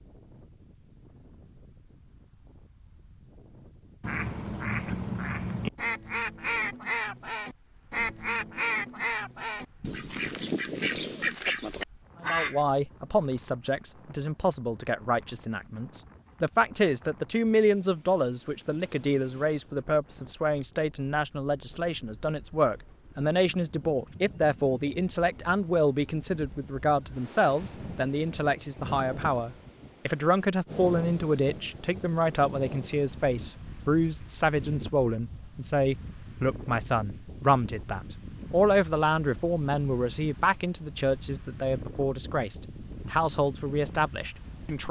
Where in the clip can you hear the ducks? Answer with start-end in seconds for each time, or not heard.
4.0-12.6.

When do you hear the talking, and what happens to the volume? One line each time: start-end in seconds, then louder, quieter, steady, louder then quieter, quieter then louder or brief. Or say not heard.
12.2-44.8 steady.